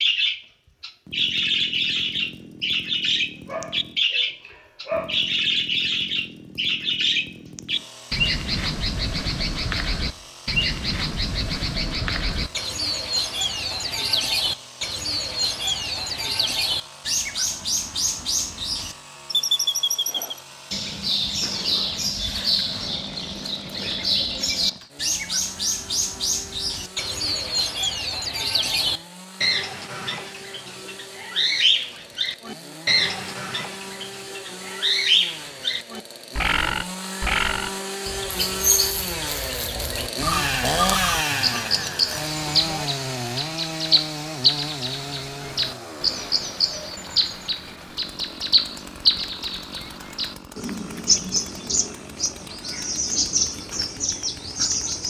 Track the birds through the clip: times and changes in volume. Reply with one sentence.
The birds can be heard from 0.0 to 55.0 s, at a steady volume.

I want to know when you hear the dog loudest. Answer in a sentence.
The loudest moment of the dog is at 5 seconds.